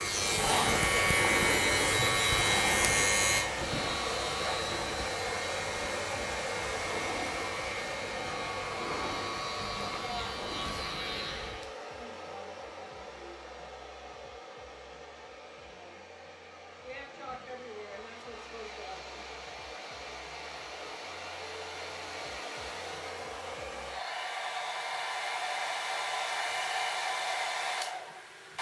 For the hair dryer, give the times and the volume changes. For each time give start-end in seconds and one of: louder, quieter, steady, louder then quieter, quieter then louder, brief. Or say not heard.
0.0-28.5 quieter then louder.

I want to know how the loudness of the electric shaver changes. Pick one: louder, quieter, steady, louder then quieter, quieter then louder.
quieter.